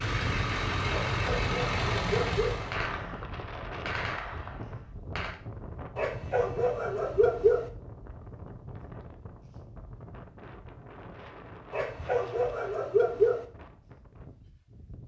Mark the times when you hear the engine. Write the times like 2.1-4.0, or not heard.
0.0-2.8.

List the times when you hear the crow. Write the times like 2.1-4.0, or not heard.
not heard.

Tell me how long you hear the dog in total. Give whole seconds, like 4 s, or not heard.
5 s.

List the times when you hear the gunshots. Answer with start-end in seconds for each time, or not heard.
2.7-5.4.